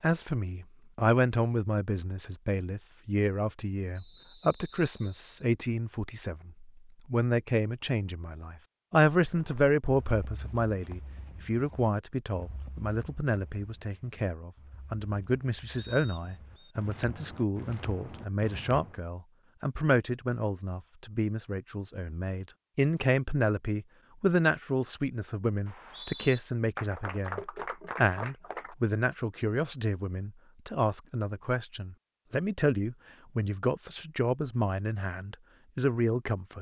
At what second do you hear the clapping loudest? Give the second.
27 s.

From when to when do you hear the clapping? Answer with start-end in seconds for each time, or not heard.
26.8-28.8.